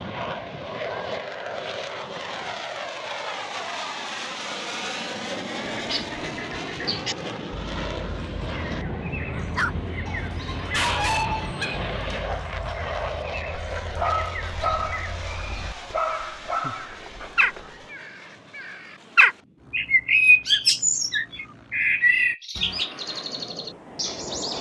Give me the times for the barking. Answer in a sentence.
The barking can be heard from 9.3 to 17.9 s.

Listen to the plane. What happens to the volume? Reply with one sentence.
The loudness of the plane goes down.